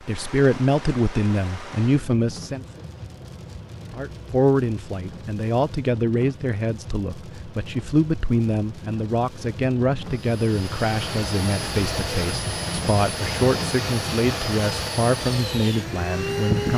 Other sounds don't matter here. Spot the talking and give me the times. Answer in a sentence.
The talking can be heard from 0.1 to 2.8 s and from 3.9 to 16.7 s.